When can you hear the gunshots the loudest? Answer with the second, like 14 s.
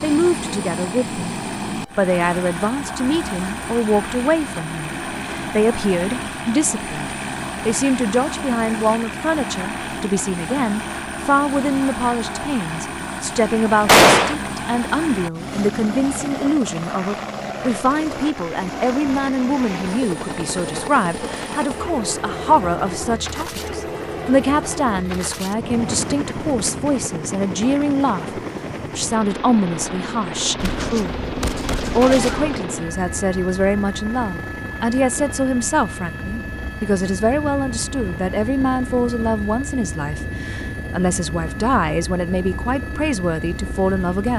14 s.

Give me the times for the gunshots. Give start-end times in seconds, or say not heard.
13.8-14.4, 30.6-32.6.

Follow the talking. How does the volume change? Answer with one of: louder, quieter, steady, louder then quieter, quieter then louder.
steady.